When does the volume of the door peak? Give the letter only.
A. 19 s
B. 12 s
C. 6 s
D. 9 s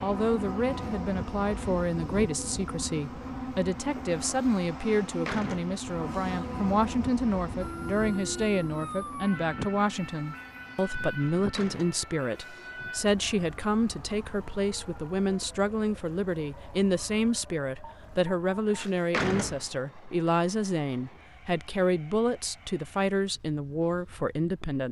A.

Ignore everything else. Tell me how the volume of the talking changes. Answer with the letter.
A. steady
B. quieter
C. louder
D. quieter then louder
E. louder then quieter
A.